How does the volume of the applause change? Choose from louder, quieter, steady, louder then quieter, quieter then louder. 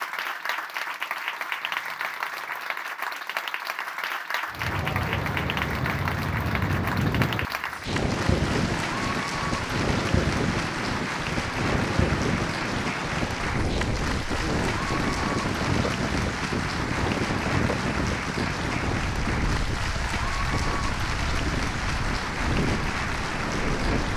steady.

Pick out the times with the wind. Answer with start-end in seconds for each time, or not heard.
4.5-24.1.